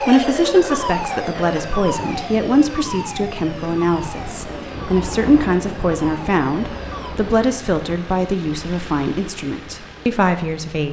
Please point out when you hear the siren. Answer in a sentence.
You can hear the siren from 0.0 to 7.2 s.